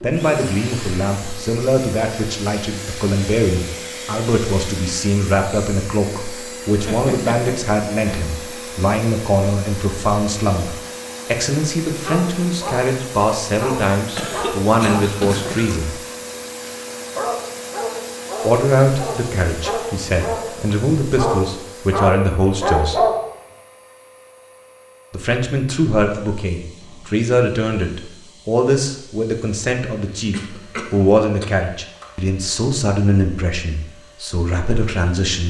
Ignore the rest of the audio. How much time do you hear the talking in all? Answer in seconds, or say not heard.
31 s.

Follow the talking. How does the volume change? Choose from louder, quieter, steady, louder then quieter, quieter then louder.
steady.